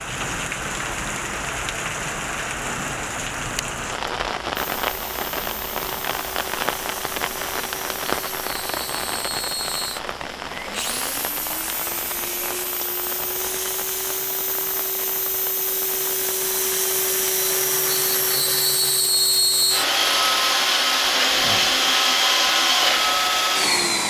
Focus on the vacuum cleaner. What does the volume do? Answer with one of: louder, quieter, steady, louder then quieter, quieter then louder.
louder.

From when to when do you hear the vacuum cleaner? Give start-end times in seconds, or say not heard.
4.5-24.0.